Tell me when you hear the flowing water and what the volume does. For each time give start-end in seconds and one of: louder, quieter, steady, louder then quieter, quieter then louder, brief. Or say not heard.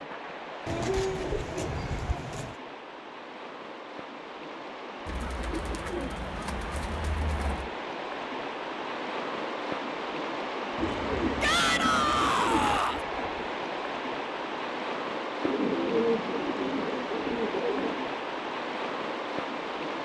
0.0-20.0 louder.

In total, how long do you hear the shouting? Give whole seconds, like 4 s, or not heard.
2 s.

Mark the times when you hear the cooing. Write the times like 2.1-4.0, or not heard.
0.7-2.5, 5.0-7.7, 10.8-12.8, 15.4-18.1.